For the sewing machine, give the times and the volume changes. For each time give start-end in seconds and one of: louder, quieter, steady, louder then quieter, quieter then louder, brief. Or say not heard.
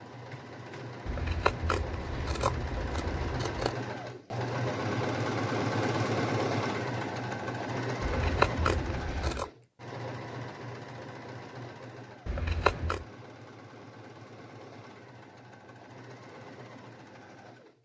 0.0-17.8 louder then quieter.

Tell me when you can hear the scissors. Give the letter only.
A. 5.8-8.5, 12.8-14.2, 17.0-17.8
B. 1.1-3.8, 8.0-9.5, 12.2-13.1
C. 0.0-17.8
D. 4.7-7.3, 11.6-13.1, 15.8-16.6
B.